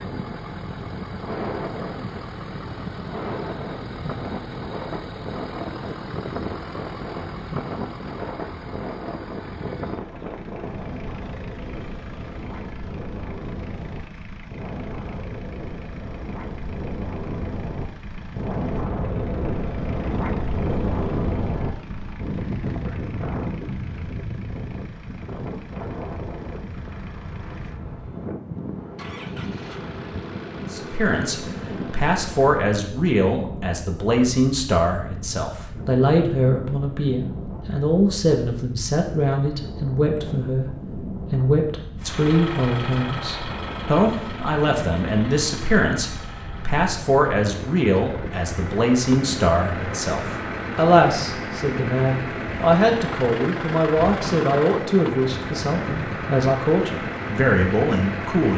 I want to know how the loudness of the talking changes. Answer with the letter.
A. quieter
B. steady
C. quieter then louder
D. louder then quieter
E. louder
B.